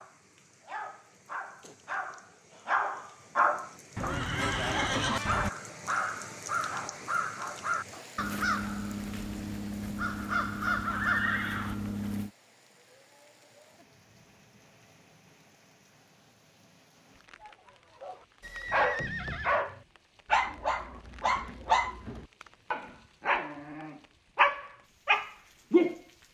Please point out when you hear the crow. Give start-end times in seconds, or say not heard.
5.2-12.3.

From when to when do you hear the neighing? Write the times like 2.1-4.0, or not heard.
4.0-5.5, 10.9-11.8, 18.4-19.6.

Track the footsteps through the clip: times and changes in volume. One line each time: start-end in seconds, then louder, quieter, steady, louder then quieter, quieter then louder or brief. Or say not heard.
not heard.